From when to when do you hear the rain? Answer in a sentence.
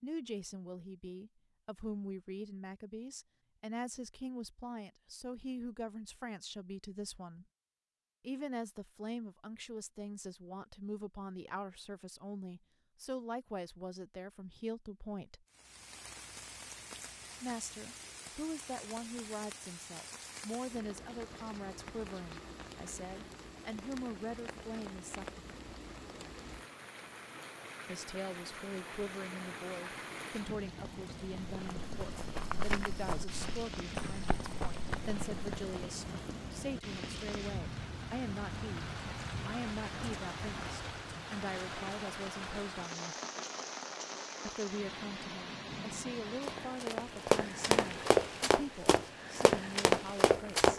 The rain can be heard from 15.4 to 50.7 s.